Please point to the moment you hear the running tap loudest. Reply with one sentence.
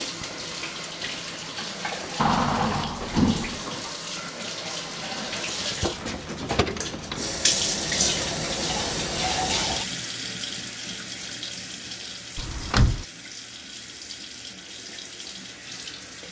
The loudest moment of the running tap is at 8 seconds.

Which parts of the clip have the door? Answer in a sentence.
You can hear the door from 2.1 to 3.6 s, from 6.4 to 7.3 s and from 12.3 to 13.1 s.